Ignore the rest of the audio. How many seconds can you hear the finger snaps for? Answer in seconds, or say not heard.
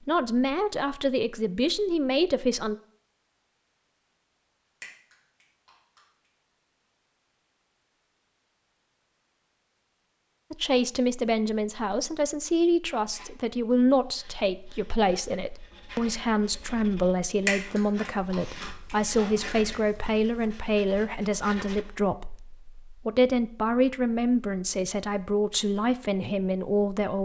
4 s.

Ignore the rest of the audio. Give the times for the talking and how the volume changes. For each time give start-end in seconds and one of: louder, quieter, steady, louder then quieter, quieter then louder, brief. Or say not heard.
0.1-2.8 brief
10.5-27.2 steady.